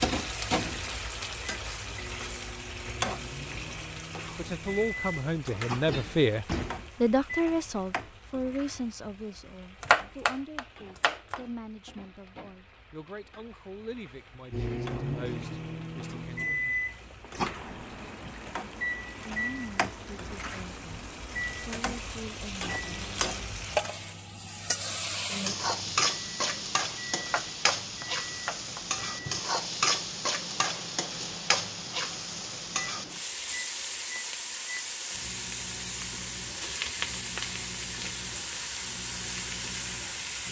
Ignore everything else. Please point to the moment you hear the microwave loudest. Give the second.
17 s.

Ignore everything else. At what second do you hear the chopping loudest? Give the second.
10 s.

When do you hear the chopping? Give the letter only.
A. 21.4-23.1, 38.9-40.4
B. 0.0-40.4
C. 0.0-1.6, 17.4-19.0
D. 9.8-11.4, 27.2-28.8
D.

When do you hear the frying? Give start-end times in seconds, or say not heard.
0.0-40.4.